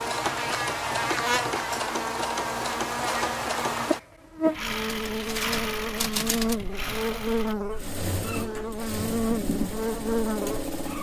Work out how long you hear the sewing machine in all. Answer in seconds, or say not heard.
11 s.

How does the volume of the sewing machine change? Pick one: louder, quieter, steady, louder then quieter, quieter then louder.
steady.